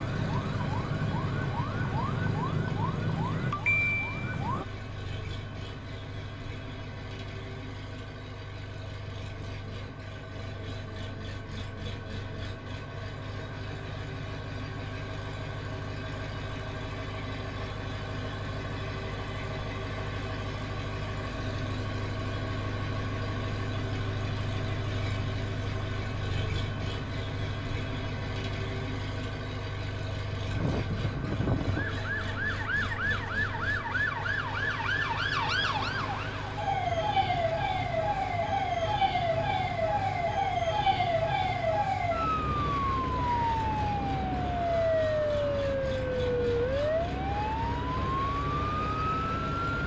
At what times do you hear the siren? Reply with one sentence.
You can hear the siren from 0.0 to 4.7 s and from 30.5 to 49.8 s.